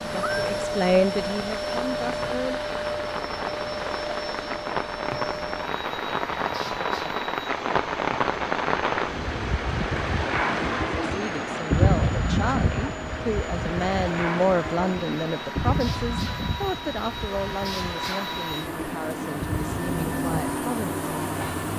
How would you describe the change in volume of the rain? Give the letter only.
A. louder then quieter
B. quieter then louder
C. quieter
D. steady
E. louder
A.